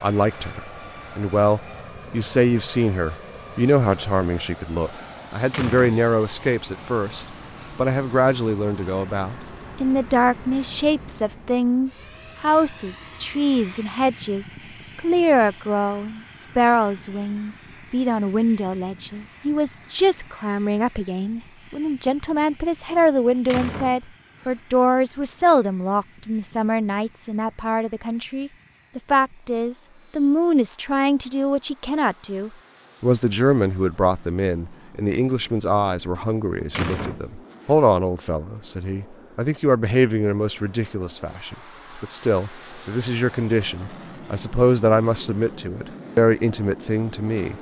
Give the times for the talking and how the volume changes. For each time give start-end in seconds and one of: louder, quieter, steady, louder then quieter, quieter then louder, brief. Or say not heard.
0.0-47.5 steady.